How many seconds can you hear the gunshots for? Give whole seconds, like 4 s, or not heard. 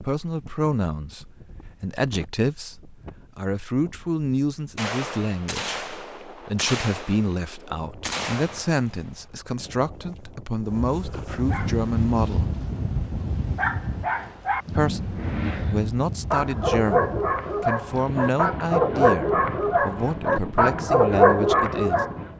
4 s.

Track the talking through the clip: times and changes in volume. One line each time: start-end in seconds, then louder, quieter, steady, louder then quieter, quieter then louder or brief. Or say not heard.
0.0-12.5 steady
14.7-22.0 steady.